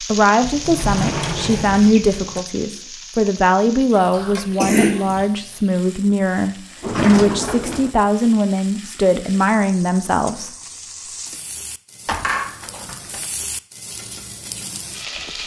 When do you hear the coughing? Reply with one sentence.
You can hear the coughing from 4.1 to 5.2 s and from 12.2 to 12.9 s.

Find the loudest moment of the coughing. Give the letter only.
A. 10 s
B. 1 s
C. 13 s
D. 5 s
D.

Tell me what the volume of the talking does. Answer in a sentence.
The volume of the talking stays about the same.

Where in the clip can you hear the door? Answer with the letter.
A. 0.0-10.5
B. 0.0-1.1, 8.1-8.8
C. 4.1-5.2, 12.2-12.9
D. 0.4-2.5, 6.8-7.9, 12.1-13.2
D.